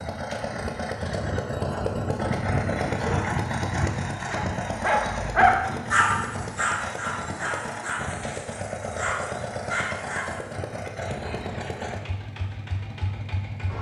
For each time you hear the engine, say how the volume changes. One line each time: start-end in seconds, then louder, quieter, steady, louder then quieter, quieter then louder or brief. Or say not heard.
0.0-13.7 quieter.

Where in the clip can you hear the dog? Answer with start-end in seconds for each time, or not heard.
3.0-10.6.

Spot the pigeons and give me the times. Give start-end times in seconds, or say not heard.
not heard.